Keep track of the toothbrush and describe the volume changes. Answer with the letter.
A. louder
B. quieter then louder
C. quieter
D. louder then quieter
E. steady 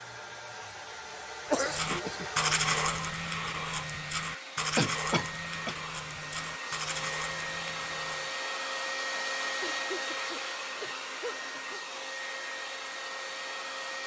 C.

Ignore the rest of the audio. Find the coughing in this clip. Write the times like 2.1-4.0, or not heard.
1.5-2.2, 4.8-5.8, 9.6-11.9.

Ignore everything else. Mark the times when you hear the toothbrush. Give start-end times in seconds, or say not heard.
1.7-8.3.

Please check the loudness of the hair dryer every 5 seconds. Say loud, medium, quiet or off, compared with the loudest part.
medium, loud, loud.